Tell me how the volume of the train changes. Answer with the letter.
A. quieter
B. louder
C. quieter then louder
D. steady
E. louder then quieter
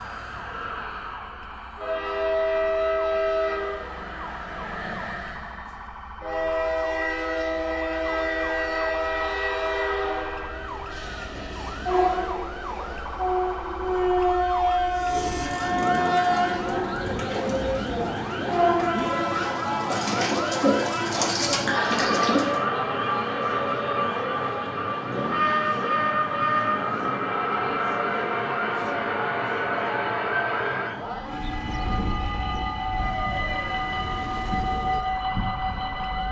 D.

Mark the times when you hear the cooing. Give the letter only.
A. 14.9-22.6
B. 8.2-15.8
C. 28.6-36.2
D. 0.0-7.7
A.